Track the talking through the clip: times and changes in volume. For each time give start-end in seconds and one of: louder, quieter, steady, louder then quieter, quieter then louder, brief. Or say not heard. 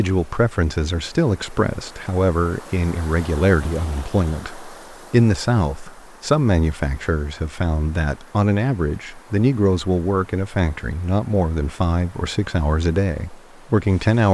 0.0-14.2 steady.